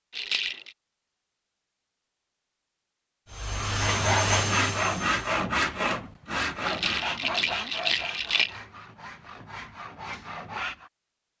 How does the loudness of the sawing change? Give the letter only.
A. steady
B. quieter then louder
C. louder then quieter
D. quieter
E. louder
D.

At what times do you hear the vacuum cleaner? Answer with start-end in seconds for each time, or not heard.
3.3-5.2.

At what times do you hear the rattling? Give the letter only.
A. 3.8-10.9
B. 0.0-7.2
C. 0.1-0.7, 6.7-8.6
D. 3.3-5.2
C.